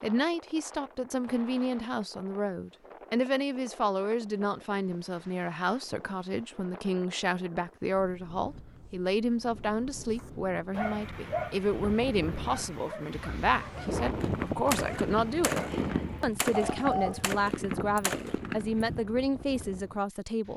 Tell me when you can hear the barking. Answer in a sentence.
You can hear the barking from 10.2 to 17.4 s.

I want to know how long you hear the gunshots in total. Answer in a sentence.
The gunshots can be heard for 5 seconds in total.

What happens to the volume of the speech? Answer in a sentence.
The loudness of the speech stays about the same.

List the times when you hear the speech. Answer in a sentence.
You can hear the speech from 0.0 to 15.6 s and from 16.2 to 20.5 s.